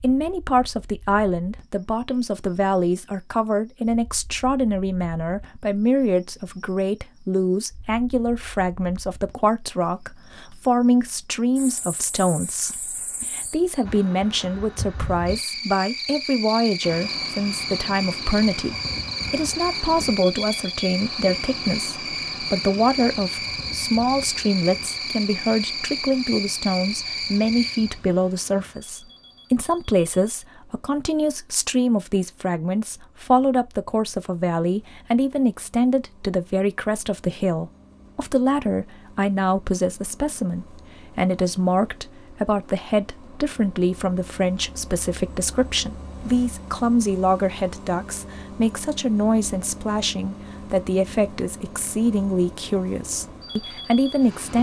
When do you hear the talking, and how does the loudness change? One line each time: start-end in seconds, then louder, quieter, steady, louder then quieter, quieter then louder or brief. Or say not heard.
0.0-54.5 steady.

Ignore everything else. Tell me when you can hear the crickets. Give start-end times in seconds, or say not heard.
0.1-28.0.